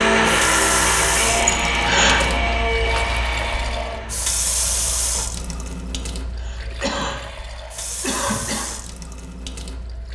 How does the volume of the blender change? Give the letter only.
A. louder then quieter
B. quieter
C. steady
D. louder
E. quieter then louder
B.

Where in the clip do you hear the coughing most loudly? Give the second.
2 s.